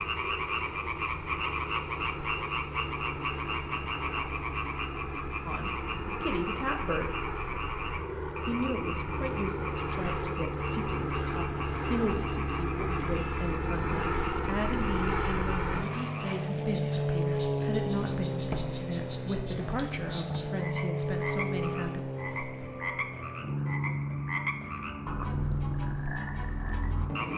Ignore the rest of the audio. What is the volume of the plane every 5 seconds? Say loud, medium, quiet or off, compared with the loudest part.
medium, medium, loud, loud, loud, loud.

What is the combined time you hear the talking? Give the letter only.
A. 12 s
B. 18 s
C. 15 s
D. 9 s
C.